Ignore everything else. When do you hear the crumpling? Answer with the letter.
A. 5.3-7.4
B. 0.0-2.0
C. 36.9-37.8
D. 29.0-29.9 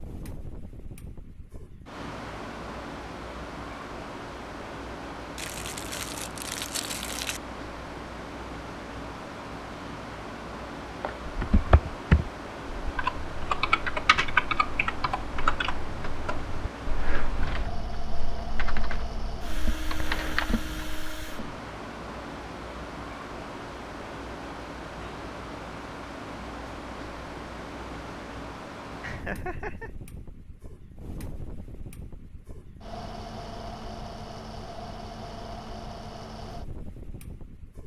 A.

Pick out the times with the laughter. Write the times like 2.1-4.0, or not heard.
29.0-29.9.